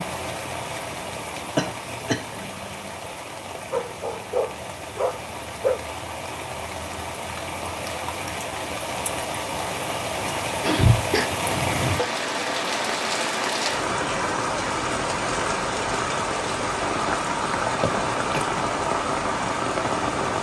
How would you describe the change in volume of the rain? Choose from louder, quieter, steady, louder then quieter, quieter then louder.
louder.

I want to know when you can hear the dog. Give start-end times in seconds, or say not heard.
3.0-5.8.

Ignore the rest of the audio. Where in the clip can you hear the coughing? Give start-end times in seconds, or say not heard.
1.6-2.2, 10.6-11.3, 17.8-18.5.